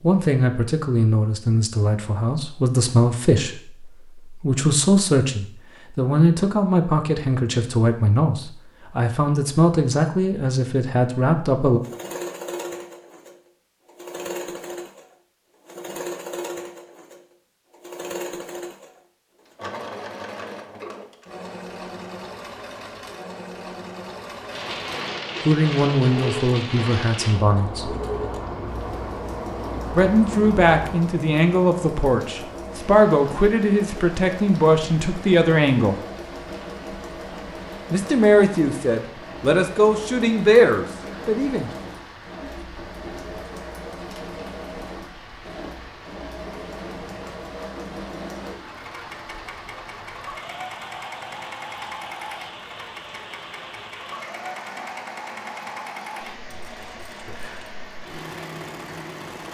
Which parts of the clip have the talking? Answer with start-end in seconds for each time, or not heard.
0.0-11.8, 25.4-27.9, 29.9-36.0, 37.9-41.7.